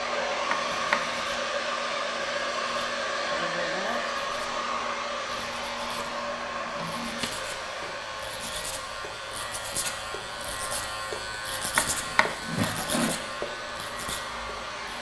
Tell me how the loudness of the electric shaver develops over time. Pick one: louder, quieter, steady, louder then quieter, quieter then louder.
louder.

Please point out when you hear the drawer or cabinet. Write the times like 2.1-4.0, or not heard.
0.5-1.2, 6.5-7.2, 11.8-13.2.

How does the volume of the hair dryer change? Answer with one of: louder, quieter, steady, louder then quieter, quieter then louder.
quieter.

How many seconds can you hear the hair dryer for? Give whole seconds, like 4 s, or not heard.
15 s.